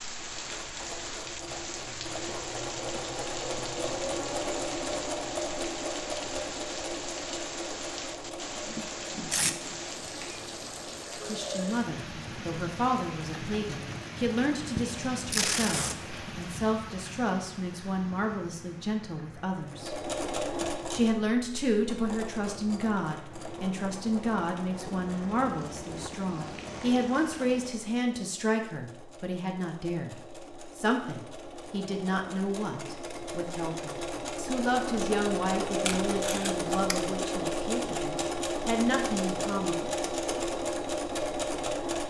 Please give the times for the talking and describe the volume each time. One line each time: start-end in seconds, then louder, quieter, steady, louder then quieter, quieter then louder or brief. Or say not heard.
11.2-20.1 steady
20.9-39.8 steady.